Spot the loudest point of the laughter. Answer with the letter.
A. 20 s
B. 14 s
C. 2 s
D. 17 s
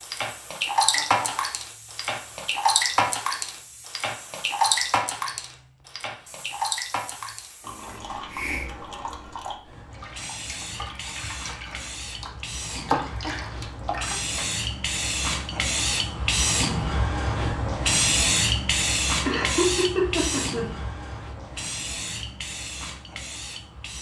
A.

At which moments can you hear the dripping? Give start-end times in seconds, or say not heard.
0.0-14.5.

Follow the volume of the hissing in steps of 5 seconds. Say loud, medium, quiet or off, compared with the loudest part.
quiet, quiet, medium, loud, medium.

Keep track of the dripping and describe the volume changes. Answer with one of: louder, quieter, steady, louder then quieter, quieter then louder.
quieter then louder.